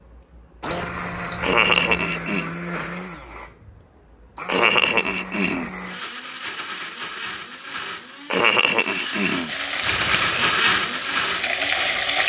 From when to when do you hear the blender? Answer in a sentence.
You can hear the blender from 0.0 to 12.2 s.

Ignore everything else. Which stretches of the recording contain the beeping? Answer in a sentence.
The beeping can be heard from 0.7 to 2.2 s.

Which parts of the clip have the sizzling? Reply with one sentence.
The sizzling can be heard from 9.4 to 12.2 s.